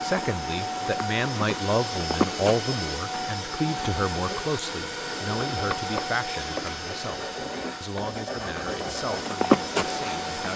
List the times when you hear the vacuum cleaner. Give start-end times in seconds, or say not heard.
0.0-10.5.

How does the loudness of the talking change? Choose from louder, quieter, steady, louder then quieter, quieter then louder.
quieter.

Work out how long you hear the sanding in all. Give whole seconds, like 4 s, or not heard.
5 s.